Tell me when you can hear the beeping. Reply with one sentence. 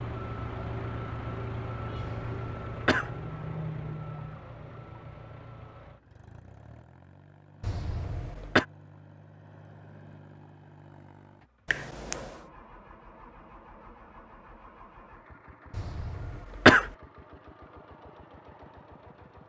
You can hear the beeping from 11.7 to 12.4 s.